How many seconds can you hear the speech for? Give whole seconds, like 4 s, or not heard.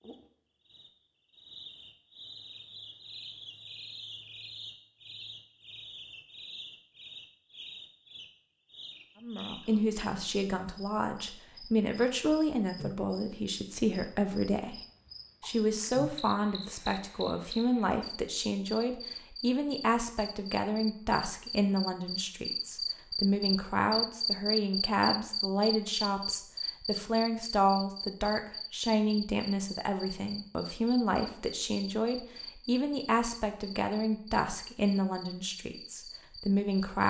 27 s.